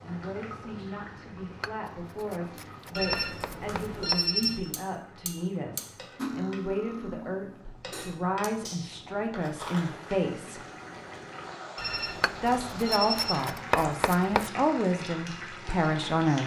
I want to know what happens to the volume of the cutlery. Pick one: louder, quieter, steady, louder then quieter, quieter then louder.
louder then quieter.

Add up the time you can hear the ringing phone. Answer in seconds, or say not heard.
3 s.